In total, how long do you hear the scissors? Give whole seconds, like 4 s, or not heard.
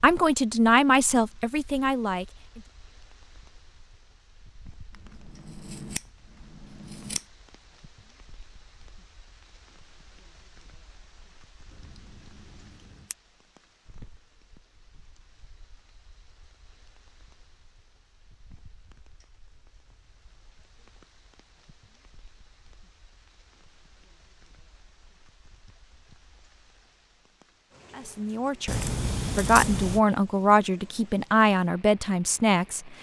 5 s.